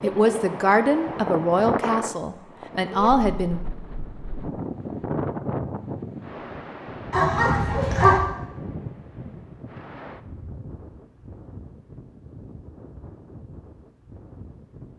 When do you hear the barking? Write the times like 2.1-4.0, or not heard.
7.1-8.2.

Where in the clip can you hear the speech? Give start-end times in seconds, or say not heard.
0.0-3.6.